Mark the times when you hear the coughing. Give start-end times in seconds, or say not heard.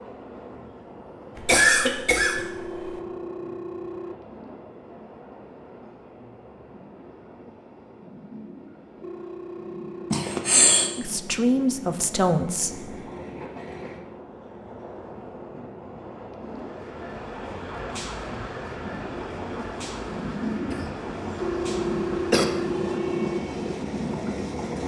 1.4-2.9, 10.1-10.9, 20.6-22.4.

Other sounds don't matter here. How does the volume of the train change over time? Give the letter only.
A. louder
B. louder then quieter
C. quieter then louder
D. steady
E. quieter
A.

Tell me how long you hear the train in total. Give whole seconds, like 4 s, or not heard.
25 s.